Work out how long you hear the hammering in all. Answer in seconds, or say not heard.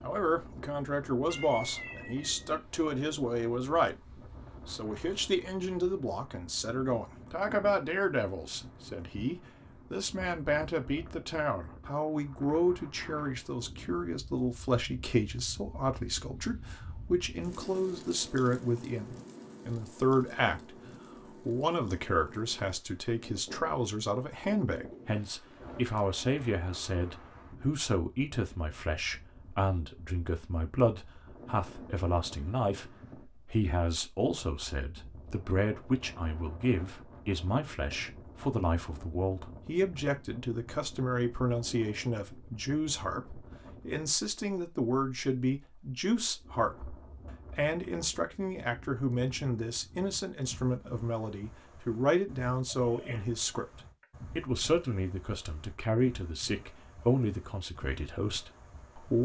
not heard.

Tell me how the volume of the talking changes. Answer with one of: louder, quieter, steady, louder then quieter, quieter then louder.
steady.